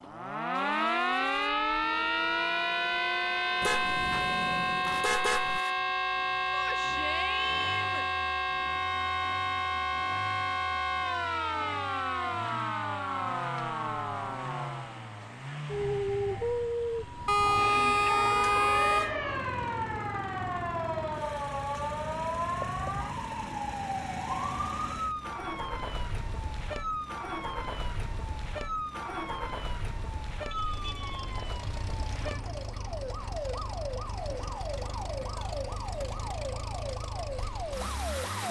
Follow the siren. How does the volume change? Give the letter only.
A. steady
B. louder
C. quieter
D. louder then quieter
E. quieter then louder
C.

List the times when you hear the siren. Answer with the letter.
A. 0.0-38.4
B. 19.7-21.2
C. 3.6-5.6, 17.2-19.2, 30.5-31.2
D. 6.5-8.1
A.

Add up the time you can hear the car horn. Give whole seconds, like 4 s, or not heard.
5 s.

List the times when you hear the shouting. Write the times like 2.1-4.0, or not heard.
6.5-8.1.